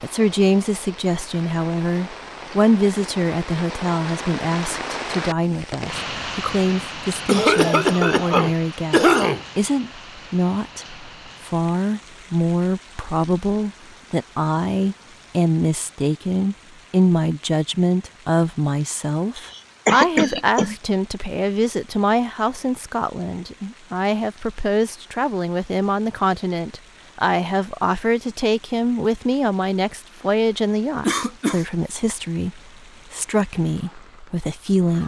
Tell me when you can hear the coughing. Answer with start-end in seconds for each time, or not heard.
7.2-9.4, 19.4-20.8, 31.0-31.6.